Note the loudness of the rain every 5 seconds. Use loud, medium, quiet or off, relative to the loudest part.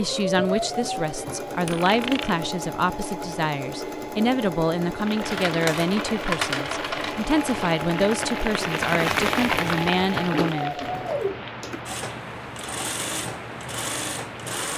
off, loud, medium.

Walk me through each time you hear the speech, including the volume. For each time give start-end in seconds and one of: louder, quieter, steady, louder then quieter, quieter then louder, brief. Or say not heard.
0.0-10.8 steady.